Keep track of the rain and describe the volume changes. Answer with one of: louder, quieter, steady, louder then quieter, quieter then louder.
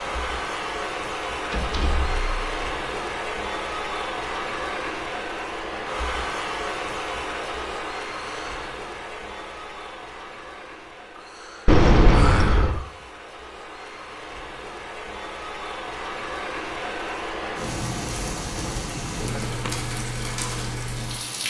quieter then louder.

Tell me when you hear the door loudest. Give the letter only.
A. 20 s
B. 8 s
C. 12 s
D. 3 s
C.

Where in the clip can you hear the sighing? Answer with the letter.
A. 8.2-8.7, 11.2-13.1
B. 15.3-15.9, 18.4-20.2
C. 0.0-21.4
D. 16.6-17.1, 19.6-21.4
A.